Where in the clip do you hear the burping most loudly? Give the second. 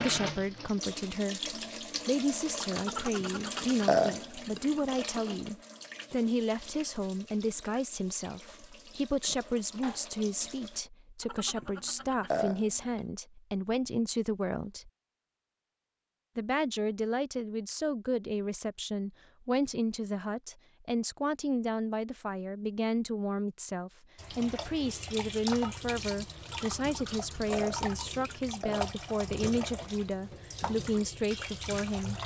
4 s.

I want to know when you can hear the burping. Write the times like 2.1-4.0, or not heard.
2.8-5.0, 11.2-13.0, 26.4-28.9.